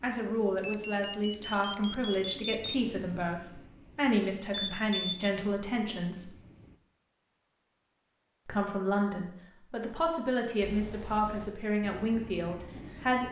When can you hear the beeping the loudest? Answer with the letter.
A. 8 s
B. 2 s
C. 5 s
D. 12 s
C.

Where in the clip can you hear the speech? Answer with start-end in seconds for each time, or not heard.
0.0-6.3, 8.4-13.2.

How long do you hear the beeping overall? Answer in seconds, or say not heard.
4 s.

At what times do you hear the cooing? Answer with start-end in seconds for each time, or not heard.
not heard.